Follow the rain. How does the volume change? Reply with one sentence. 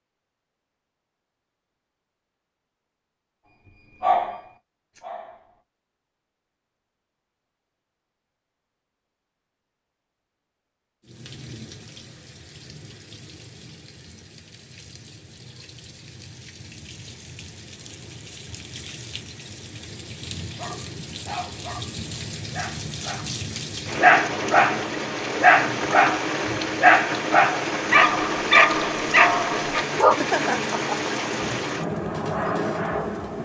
The volume of the rain goes up.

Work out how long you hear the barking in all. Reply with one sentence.
You can hear the barking for 10 seconds altogether.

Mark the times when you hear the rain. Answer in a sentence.
The rain can be heard from 11.0 to 33.4 s.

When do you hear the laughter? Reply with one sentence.
You can hear the laughter from 30.0 to 31.1 s.